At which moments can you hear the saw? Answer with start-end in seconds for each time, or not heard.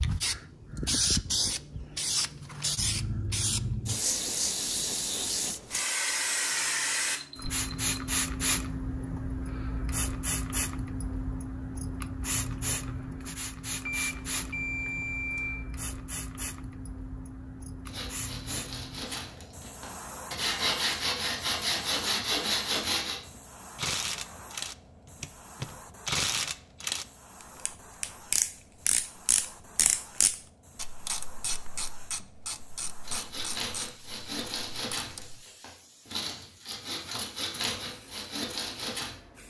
17.9-23.2, 33.0-39.1.